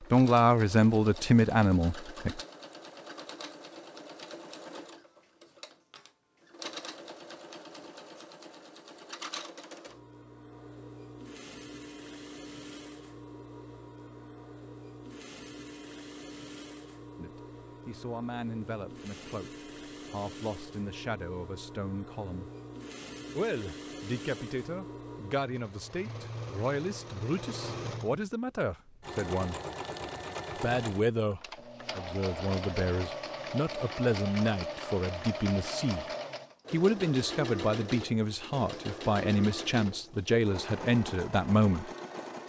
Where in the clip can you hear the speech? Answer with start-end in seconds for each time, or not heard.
0.1-2.4, 17.1-22.5, 23.4-29.6, 30.6-36.0, 36.7-41.9.